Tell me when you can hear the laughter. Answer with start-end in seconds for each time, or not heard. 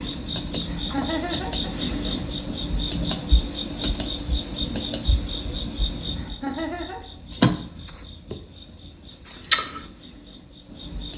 0.7-1.7, 6.2-7.0.